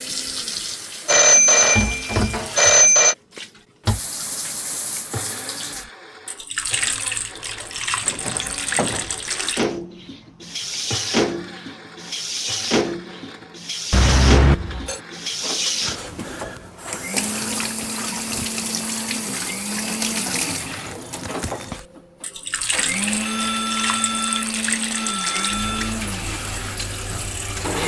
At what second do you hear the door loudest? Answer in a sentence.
The volume of the door peaks at 9 seconds.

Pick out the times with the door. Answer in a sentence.
You can hear the door from 7.6 to 9.3 s.